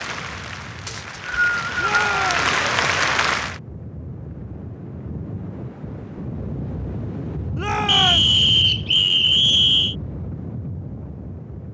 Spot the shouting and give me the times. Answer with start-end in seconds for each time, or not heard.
1.8-2.5, 7.5-8.4.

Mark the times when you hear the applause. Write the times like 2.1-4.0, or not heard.
0.0-3.6.